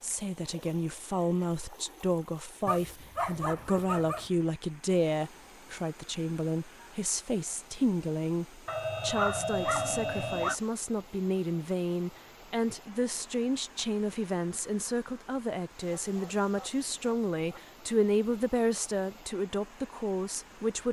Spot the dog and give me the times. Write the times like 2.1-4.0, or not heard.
2.6-4.3, 8.7-10.6, 15.8-17.6.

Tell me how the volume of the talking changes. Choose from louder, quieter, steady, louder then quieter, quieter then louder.
steady.